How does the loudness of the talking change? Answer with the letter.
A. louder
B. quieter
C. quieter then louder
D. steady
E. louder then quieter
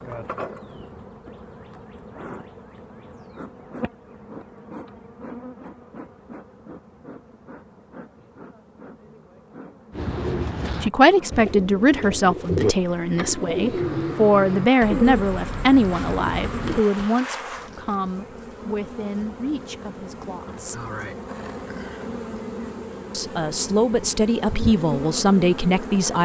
C.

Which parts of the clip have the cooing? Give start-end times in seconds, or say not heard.
9.9-17.1.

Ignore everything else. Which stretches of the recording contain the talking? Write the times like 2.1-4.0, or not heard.
10.8-20.9, 23.1-26.2.